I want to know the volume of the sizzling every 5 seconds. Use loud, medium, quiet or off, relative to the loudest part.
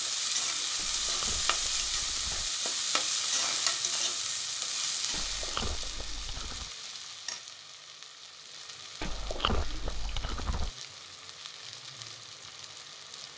loud, medium, quiet.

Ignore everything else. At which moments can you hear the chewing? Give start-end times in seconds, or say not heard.
0.8-2.5, 5.1-6.7, 9.0-10.7.